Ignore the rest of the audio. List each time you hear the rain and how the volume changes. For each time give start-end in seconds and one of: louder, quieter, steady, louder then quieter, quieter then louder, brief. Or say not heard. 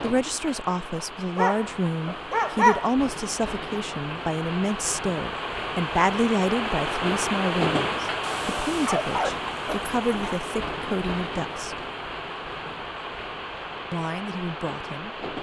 0.0-15.3 louder then quieter.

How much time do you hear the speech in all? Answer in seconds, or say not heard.
13 s.